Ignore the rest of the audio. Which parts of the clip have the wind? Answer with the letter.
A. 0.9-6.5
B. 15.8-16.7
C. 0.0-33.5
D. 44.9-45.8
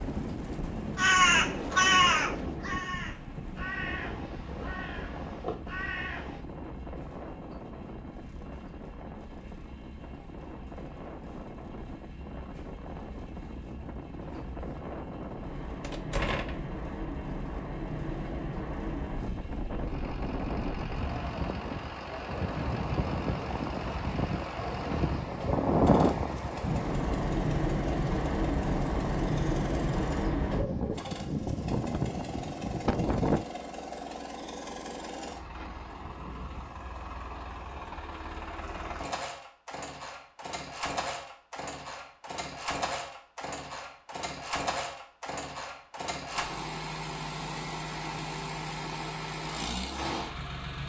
C.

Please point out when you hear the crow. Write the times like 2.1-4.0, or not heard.
0.9-6.5.